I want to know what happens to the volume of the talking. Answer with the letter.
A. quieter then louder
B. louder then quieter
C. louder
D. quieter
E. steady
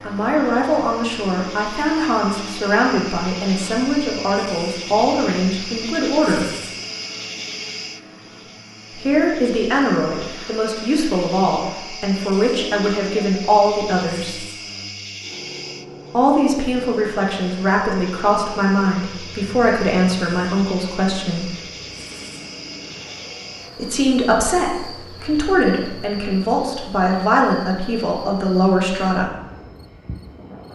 E.